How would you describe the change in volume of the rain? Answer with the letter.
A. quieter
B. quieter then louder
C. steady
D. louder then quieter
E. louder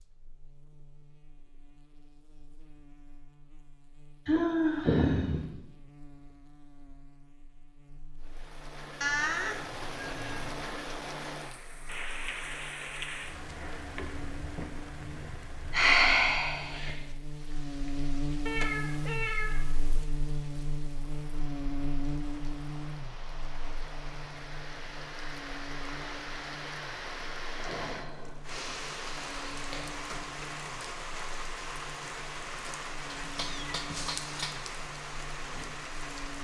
B.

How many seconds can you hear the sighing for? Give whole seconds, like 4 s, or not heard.
5 s.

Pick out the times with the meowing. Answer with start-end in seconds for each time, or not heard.
9.0-10.5, 18.4-20.1, 33.2-34.6.